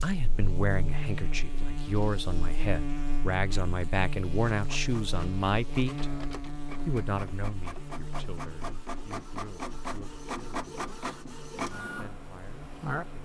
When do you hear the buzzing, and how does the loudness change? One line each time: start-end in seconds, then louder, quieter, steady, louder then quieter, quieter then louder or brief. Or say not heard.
0.0-13.1 quieter.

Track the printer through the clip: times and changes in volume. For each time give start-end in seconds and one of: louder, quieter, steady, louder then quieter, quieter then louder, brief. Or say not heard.
4.3-13.1 louder.